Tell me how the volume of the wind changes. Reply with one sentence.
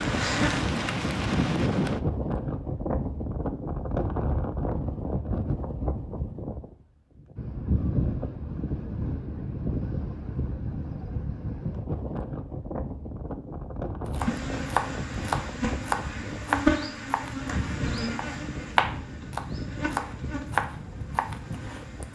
The volume of the wind goes down.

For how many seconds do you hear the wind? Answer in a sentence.
The wind can be heard for 22 seconds in total.